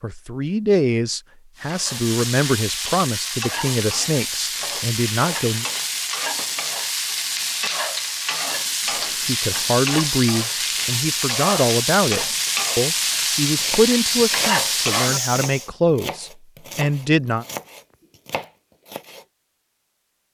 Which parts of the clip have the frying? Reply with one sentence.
You can hear the frying from 1.6 to 15.7 s.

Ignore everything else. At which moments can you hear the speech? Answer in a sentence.
The speech can be heard from 0.0 to 5.7 s and from 9.2 to 17.4 s.